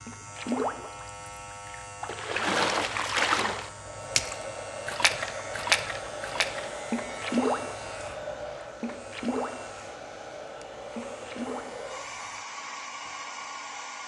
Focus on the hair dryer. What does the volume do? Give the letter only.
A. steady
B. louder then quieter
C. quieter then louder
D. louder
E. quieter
A.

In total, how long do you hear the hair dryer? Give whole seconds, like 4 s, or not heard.
10 s.